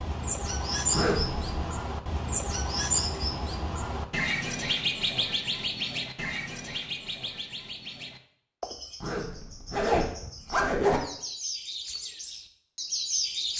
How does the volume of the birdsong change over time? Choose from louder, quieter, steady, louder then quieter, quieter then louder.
quieter then louder.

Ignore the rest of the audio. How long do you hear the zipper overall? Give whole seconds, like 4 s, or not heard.
3 s.